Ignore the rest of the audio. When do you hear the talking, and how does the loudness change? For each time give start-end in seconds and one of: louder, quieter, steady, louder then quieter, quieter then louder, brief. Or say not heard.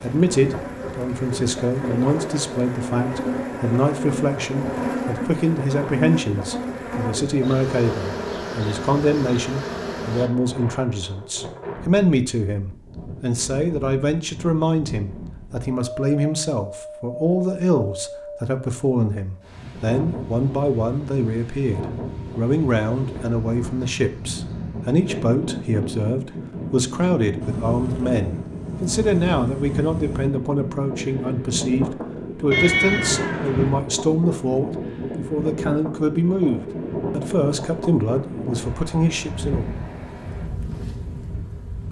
0.0-39.7 steady.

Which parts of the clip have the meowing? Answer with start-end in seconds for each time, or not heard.
32.5-33.9.